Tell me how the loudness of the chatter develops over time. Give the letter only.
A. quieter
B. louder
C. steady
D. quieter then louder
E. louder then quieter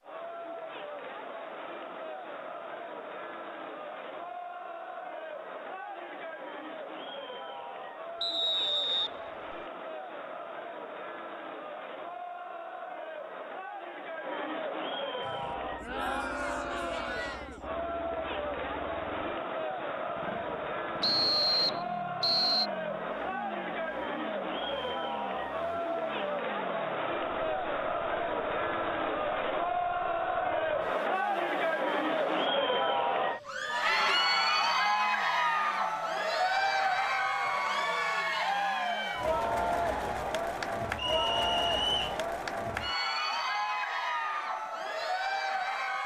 B.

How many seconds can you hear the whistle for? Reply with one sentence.
The whistle can be heard for 4 seconds in total.